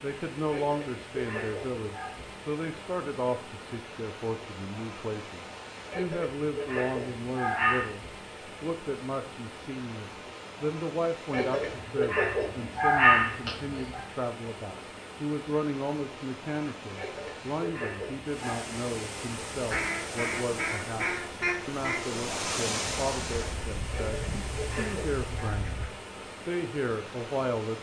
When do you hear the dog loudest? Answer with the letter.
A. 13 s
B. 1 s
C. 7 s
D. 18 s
A.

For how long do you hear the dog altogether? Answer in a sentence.
The dog can be heard for 10 seconds in total.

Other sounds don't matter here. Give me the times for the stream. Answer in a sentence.
You can hear the stream from 0.0 to 27.7 s.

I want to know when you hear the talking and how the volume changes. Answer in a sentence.
You can hear the talking from 0.0 to 27.7 s, at a steady volume.